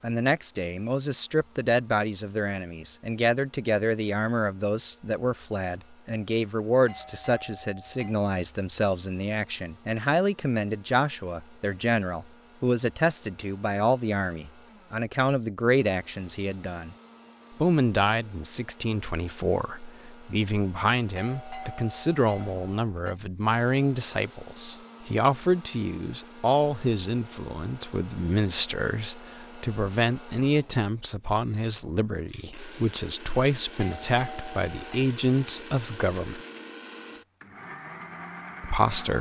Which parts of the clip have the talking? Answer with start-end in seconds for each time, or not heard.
0.0-16.9, 17.6-36.4, 38.6-39.1.